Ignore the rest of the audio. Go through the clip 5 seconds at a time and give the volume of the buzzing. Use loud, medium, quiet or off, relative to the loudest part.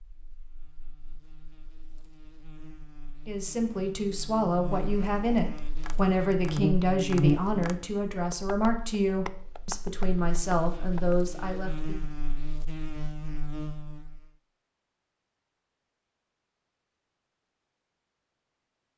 quiet, loud, medium, off.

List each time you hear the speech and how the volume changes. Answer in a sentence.
The speech can be heard from 3.2 to 12.0 s, at a steady volume.